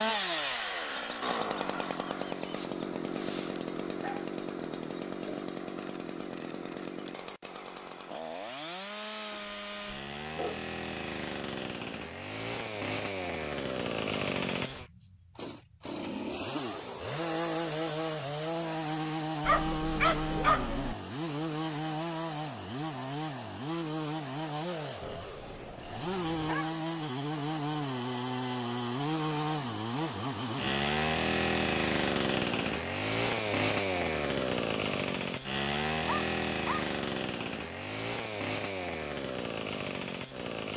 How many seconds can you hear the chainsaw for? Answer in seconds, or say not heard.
41 s.